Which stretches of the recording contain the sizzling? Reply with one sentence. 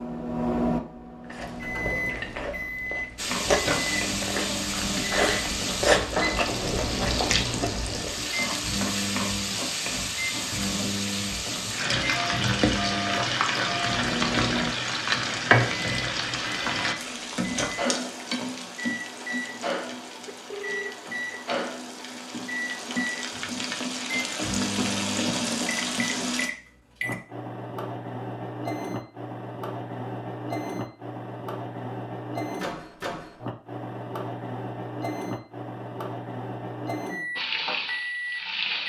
The sizzling can be heard from 3.1 to 26.5 s and from 37.4 to 38.8 s.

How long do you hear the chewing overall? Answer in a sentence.
You can hear the chewing for 7 seconds altogether.